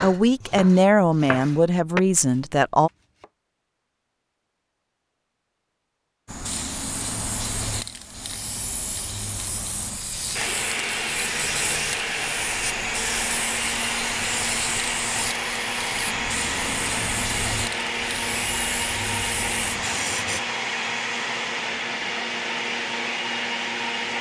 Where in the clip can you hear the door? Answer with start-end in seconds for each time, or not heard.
not heard.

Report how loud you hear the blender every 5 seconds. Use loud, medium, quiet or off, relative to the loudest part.
off, off, loud, loud, loud.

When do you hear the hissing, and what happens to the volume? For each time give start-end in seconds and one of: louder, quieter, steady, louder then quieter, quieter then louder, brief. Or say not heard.
6.2-20.4 steady.